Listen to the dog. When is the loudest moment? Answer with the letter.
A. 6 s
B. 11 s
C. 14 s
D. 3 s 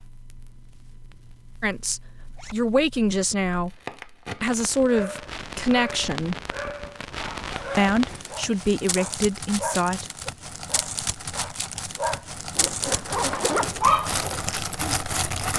C.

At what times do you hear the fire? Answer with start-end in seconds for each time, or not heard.
0.0-15.5.